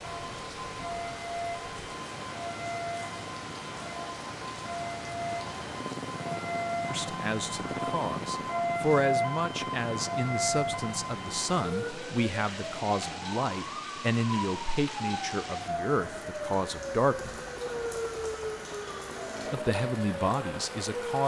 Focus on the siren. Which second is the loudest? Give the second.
9 s.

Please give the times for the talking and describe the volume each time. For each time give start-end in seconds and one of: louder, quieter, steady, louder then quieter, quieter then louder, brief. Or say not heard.
6.9-17.4 steady
19.4-21.2 brief.